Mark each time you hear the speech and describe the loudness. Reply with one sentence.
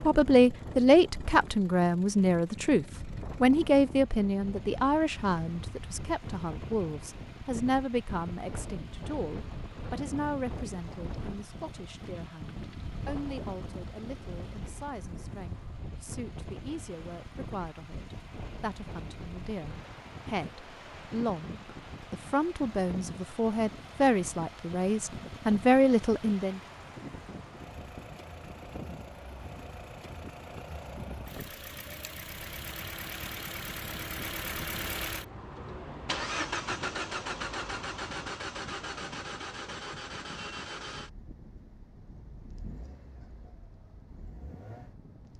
The speech can be heard from 0.0 to 26.6 s, getting quieter then louder.